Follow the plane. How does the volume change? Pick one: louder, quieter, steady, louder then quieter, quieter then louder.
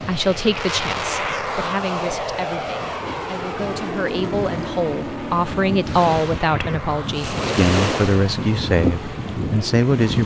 quieter.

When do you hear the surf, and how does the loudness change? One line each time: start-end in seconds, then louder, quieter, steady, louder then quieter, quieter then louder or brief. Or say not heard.
0.0-10.2 louder.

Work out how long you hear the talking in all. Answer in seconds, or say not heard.
10 s.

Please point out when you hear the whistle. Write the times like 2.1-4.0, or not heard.
not heard.